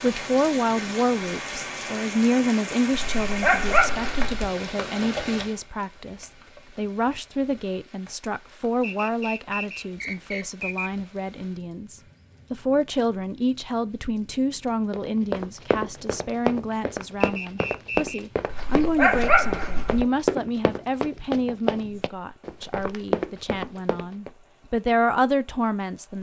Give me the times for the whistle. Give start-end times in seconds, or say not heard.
8.8-10.9, 17.2-18.2.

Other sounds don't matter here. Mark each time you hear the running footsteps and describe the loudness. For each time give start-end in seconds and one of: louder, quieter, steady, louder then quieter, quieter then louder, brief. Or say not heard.
14.9-24.3 steady.